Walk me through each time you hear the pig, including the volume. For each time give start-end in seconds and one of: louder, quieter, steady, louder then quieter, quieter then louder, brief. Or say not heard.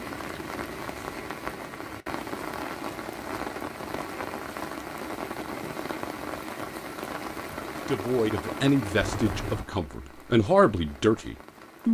not heard.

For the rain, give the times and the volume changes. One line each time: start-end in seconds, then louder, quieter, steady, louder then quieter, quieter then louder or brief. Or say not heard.
0.0-11.8 quieter.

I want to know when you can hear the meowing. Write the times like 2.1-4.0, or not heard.
9.0-9.7.